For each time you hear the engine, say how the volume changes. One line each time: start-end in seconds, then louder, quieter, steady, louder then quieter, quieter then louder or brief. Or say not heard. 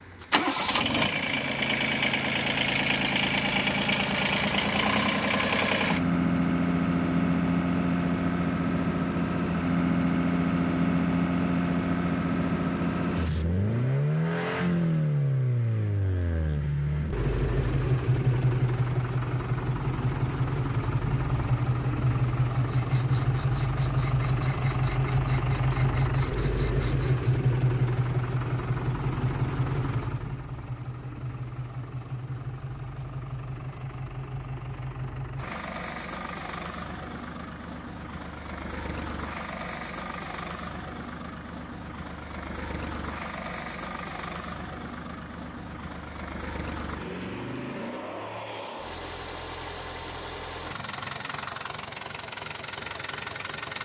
0.0-53.8 quieter.